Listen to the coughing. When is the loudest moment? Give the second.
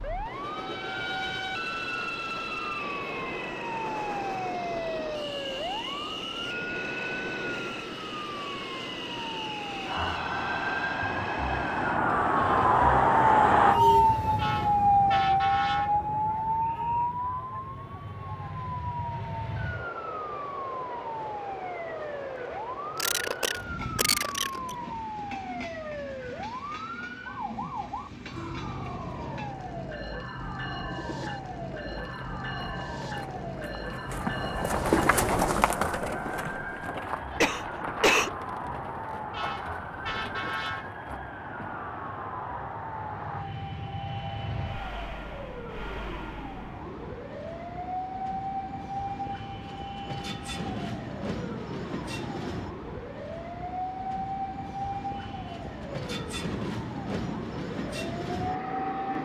38 s.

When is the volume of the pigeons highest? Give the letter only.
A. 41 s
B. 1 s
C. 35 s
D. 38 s
C.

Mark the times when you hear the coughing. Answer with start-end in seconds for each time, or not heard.
22.9-24.6, 37.4-38.3.